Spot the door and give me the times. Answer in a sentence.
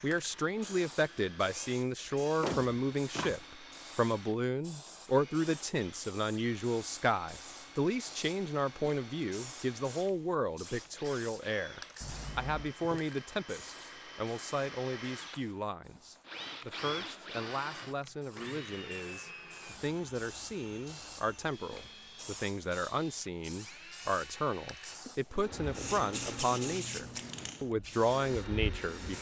The door can be heard from 2.2 to 3.5 s, from 12.0 to 12.8 s and from 25.5 to 27.6 s.